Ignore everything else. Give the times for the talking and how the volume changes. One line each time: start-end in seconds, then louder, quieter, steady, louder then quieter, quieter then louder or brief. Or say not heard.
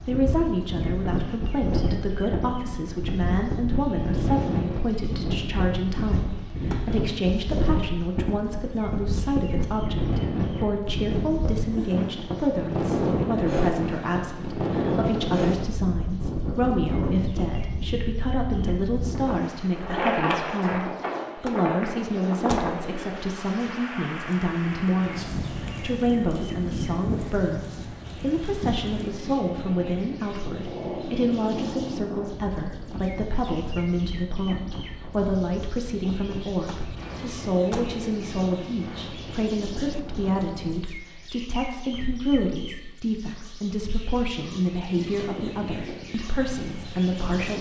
0.0-47.5 steady.